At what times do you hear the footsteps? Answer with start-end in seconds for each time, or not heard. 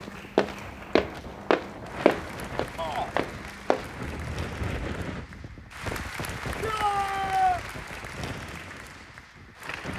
0.3-3.9.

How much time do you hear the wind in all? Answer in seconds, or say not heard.
10 s.